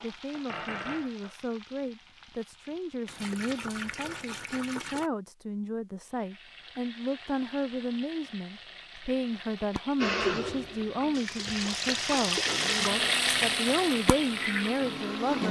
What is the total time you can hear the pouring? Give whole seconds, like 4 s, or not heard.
4 s.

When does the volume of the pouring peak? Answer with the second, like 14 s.
12 s.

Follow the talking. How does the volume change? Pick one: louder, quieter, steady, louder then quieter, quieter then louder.
louder.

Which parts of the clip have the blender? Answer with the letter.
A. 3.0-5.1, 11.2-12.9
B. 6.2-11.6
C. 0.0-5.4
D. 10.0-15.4
D.